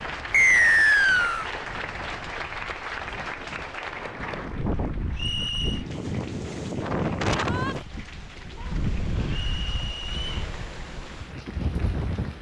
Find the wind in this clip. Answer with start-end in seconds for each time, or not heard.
0.0-12.3.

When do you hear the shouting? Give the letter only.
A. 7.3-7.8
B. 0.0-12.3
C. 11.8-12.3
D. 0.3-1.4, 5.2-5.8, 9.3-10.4
A.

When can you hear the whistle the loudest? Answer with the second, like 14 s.
1 s.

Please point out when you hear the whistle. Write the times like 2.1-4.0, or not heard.
0.3-1.4, 5.2-5.8, 9.3-10.4.